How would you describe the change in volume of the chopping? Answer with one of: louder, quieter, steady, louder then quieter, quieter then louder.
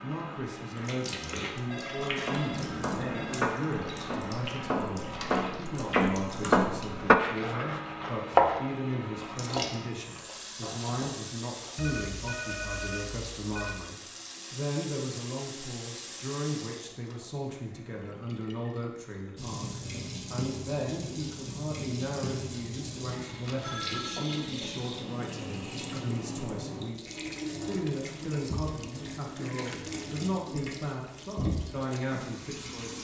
louder then quieter.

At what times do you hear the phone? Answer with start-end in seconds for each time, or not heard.
1.7-3.4, 11.8-13.8, 23.4-24.4.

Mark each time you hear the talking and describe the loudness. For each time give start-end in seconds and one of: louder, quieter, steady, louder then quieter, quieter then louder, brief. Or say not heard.
0.0-33.0 steady.